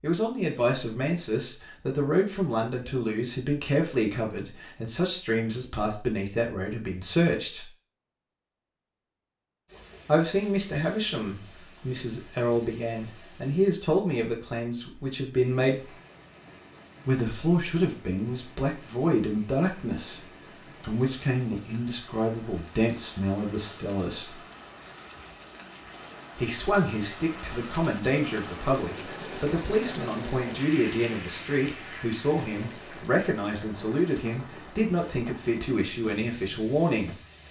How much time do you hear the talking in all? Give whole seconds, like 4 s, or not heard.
31 s.